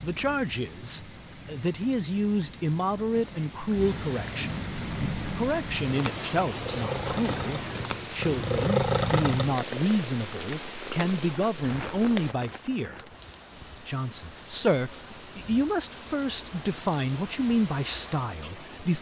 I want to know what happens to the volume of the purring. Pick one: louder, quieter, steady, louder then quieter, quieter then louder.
louder then quieter.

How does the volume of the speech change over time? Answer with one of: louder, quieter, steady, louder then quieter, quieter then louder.
steady.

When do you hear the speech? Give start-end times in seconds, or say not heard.
0.0-4.7, 5.3-13.1, 13.8-18.9.